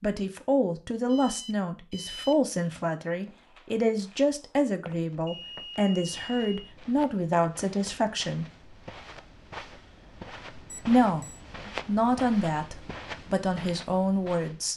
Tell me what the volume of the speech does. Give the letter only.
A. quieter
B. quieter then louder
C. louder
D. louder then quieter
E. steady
E.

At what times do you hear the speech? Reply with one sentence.
You can hear the speech from 0.0 to 8.4 s and from 10.8 to 14.7 s.